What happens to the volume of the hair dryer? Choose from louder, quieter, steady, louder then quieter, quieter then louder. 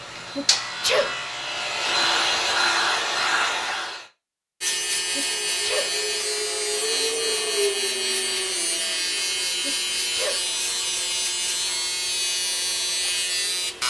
louder.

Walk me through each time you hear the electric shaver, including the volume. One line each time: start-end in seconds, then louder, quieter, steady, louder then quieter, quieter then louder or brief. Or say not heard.
0.0-2.4 brief
4.6-13.8 steady.